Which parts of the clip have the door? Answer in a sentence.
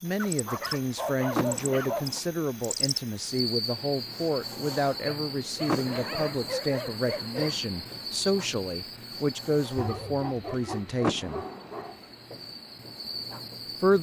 You can hear the door from 1.4 to 2.2 s, from 5.7 to 6.5 s and from 11.0 to 11.9 s.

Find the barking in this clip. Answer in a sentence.
The barking can be heard from 0.1 to 2.2 s, from 5.0 to 7.6 s and from 9.8 to 12.1 s.